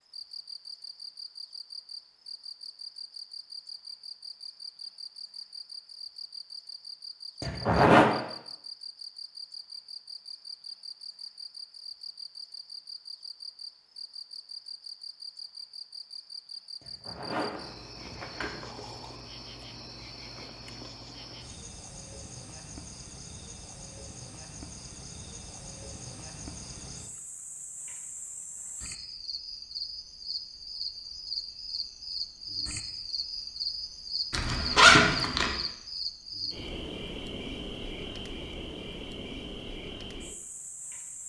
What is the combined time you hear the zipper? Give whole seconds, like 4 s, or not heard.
4 s.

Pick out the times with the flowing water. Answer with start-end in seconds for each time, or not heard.
not heard.